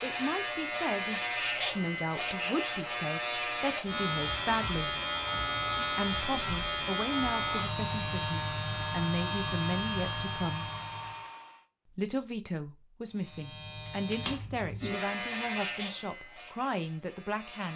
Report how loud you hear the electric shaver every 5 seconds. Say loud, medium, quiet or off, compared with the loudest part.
loud, loud, medium, medium.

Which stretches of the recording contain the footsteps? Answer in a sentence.
The footsteps can't be heard in this clip.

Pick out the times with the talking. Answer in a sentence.
You can hear the talking from 0.0 to 5.0 s, from 5.9 to 10.7 s and from 11.9 to 17.7 s.